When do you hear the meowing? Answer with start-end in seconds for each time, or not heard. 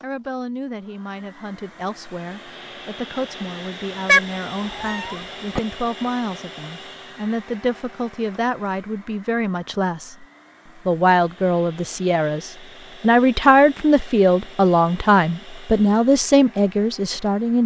4.0-5.6.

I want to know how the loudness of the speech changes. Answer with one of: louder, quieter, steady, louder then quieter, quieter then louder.
louder.